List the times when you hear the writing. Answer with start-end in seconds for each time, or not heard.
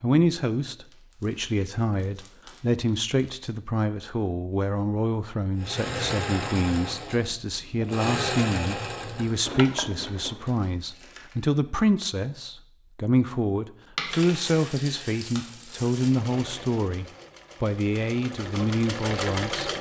not heard.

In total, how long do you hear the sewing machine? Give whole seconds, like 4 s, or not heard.
9 s.